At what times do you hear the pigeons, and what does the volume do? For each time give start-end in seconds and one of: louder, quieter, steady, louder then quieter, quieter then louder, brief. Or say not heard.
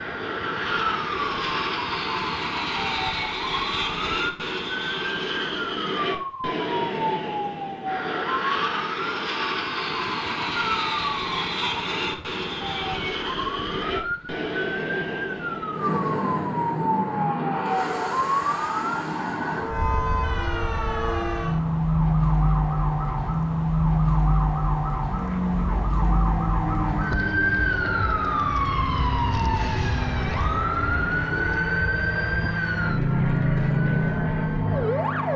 not heard.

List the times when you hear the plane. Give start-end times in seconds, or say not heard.
0.0-35.3.